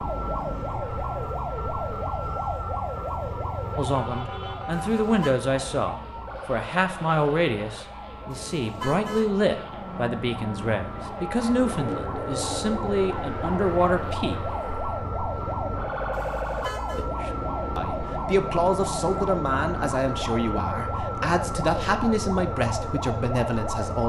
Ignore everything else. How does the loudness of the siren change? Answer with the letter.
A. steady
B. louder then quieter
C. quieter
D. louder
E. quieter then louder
E.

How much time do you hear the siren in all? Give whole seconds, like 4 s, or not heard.
24 s.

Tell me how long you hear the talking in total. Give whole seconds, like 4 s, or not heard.
18 s.